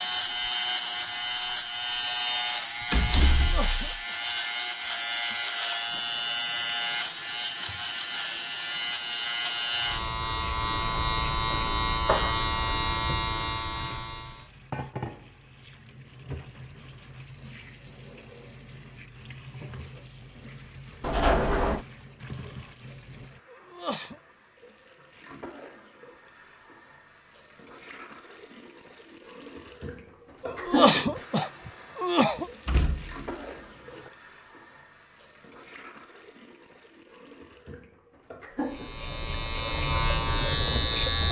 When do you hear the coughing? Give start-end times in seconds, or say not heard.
3.4-4.2, 23.4-24.2, 30.4-32.5.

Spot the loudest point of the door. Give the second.
21 s.